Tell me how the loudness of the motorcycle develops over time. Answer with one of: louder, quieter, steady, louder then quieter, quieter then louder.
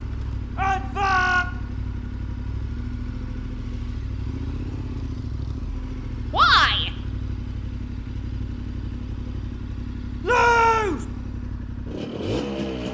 steady.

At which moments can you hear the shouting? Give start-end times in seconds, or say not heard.
0.6-1.4, 6.3-6.9, 10.2-11.1.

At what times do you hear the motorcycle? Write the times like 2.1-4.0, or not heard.
0.0-12.8.